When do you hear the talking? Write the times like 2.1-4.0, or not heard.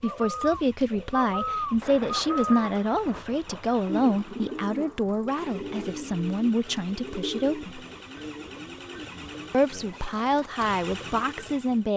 0.0-7.8, 9.5-11.9.